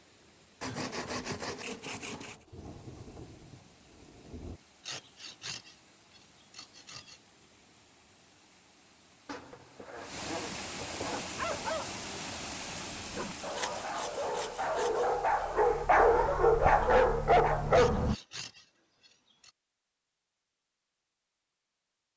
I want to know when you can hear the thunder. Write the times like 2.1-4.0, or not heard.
2.2-4.6.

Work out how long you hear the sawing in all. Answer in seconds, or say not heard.
10 s.